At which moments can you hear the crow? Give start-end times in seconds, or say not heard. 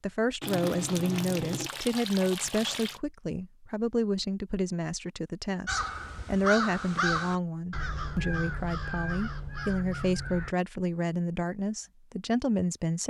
5.7-10.6.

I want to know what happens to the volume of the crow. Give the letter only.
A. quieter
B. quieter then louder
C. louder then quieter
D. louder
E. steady
A.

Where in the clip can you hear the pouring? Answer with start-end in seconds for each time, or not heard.
0.4-3.0.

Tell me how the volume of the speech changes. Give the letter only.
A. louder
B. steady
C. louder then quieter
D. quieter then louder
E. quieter
B.